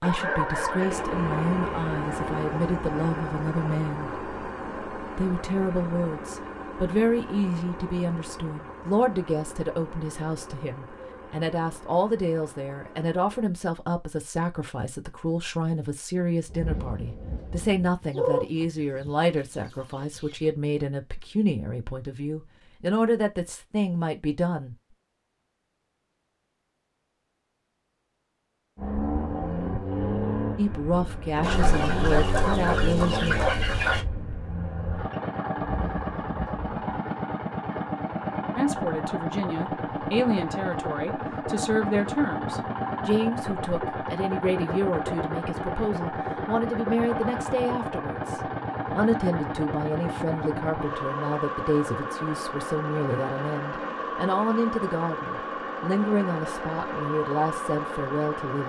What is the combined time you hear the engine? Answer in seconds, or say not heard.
43 s.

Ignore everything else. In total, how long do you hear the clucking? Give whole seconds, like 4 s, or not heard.
5 s.